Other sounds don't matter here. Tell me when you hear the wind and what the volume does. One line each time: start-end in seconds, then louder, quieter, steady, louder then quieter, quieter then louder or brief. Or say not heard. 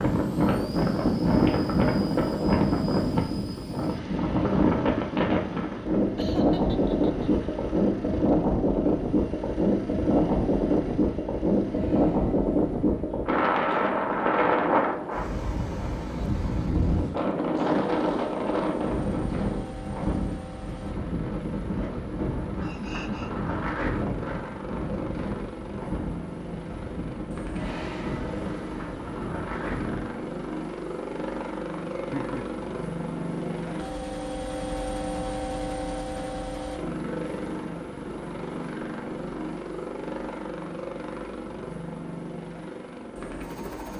0.0-30.1 quieter.